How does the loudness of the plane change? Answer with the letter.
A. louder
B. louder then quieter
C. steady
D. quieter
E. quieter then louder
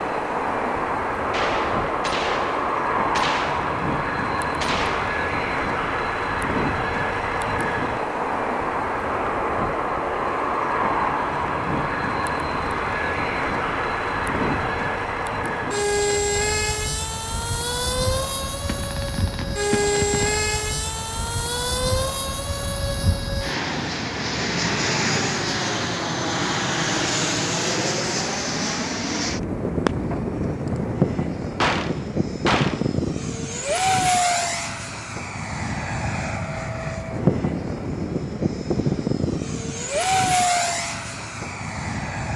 C.